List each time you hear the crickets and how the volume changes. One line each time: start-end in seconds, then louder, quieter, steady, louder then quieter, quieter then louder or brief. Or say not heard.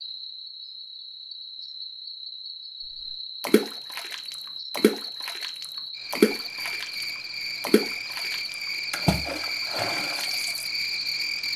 0.0-11.5 louder.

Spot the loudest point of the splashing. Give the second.
6 s.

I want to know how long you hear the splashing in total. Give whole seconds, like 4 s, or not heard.
7 s.